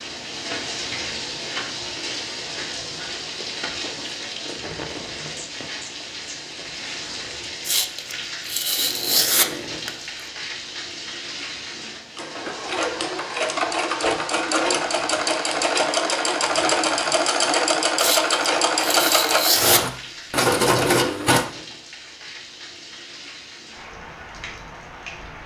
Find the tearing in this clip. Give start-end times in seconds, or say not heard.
7.7-9.9, 17.9-19.8.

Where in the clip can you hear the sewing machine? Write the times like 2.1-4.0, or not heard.
12.2-21.4.